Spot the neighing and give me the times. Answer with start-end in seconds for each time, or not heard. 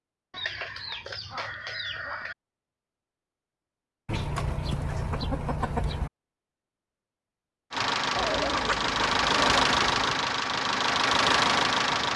not heard.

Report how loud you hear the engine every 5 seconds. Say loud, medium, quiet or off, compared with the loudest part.
off, loud, loud.